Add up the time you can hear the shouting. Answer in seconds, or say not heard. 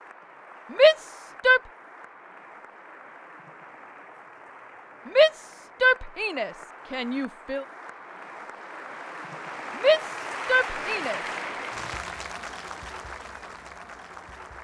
5 s.